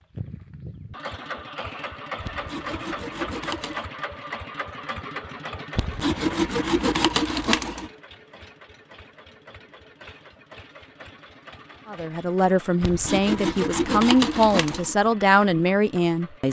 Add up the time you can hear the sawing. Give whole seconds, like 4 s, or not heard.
6 s.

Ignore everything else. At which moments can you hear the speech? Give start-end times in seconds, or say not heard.
11.8-16.4.